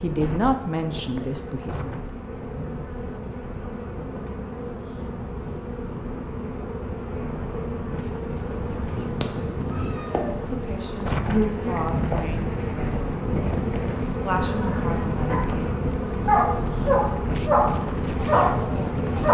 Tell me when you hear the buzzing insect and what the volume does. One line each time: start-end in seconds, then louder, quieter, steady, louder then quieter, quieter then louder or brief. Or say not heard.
0.0-19.2 louder.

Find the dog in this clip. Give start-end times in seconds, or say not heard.
14.4-19.2.